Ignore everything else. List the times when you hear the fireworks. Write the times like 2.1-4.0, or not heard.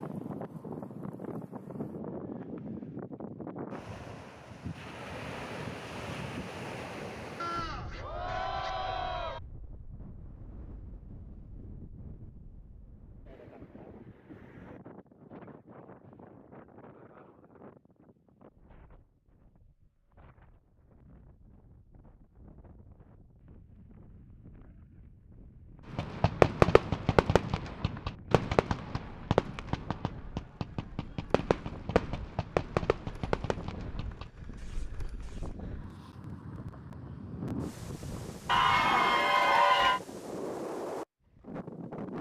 25.9-35.5.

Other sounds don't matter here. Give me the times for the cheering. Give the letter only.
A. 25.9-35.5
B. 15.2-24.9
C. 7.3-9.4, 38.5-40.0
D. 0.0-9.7
C.